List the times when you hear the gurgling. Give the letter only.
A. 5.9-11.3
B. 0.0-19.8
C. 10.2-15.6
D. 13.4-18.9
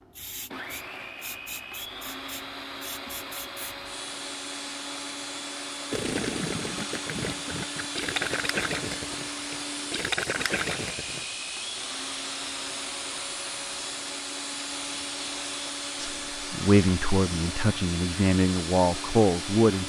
A.